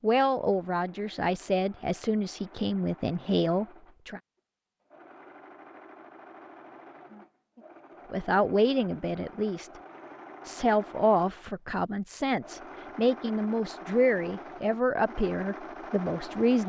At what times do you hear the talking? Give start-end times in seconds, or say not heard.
0.0-4.2, 8.1-9.7, 10.4-16.6.